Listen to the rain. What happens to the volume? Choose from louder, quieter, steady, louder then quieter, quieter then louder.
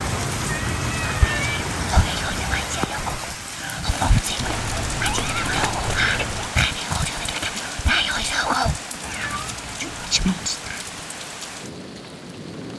quieter.